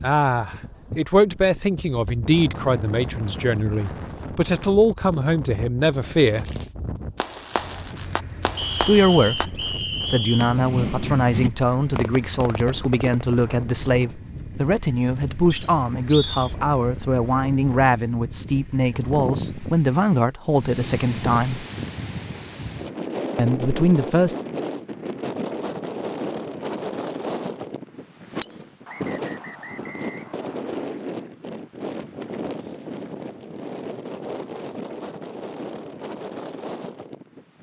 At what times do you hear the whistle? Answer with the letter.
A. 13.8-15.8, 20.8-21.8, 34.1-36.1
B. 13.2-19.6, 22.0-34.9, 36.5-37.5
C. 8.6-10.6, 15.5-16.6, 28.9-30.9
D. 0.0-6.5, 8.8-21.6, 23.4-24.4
C.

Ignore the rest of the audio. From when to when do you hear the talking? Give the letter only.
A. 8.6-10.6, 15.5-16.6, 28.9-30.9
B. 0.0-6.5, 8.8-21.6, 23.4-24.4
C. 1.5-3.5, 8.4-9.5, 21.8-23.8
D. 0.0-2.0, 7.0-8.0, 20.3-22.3
B.